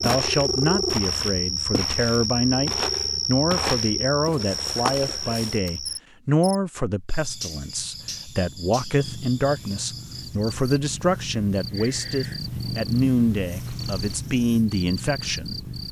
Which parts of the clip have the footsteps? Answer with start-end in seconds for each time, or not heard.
0.0-5.6.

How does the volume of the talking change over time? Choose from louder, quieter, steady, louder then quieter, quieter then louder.
steady.